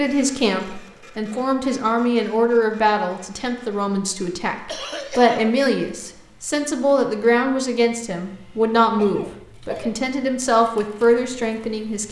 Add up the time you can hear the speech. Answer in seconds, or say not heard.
12 s.